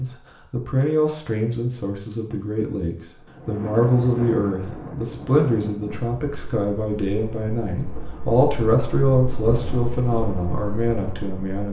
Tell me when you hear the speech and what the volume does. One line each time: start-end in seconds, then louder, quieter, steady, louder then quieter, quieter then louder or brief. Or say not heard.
0.0-11.6 steady.